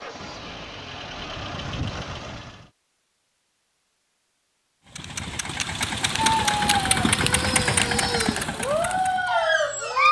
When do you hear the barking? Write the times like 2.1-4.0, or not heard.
6.2-10.0.